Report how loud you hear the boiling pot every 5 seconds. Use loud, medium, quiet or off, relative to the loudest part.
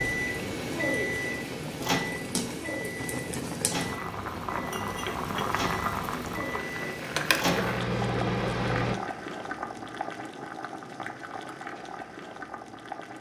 loud, loud, medium.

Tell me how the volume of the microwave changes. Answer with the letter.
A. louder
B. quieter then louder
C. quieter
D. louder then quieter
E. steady
B.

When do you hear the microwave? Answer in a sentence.
The microwave can be heard from 0.0 to 8.9 s.